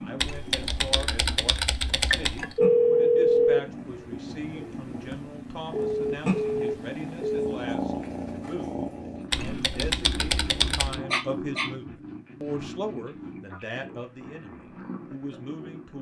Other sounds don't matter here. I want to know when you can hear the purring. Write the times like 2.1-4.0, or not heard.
0.0-15.9.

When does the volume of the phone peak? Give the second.
3 s.